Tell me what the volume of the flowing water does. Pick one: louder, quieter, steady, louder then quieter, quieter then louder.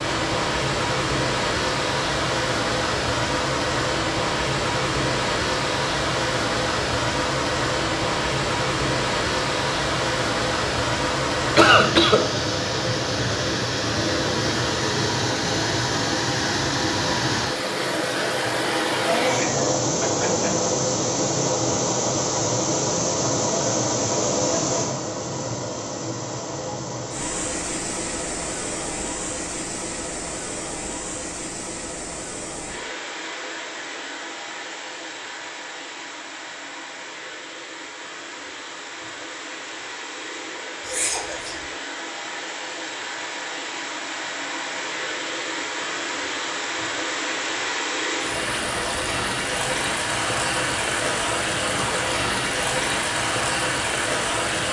quieter then louder.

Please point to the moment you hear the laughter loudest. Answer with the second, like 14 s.
12 s.